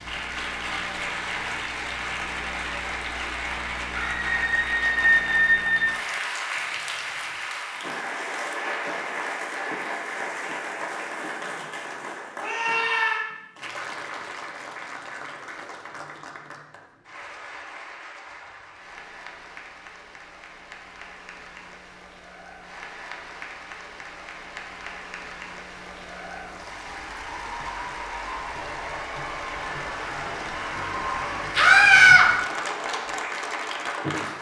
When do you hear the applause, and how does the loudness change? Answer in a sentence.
You can hear the applause from 0.0 to 34.3 s, getting quieter then louder.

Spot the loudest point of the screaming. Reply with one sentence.
The volume of the screaming peaks at 32 seconds.